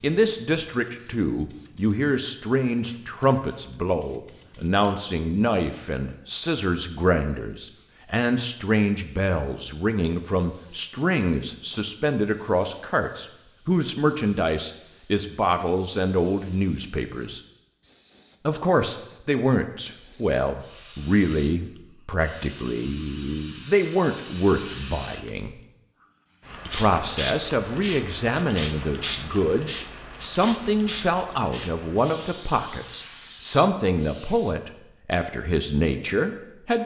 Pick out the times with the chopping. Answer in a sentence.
The chopping can't be heard in this clip.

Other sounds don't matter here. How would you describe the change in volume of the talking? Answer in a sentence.
The loudness of the talking stays about the same.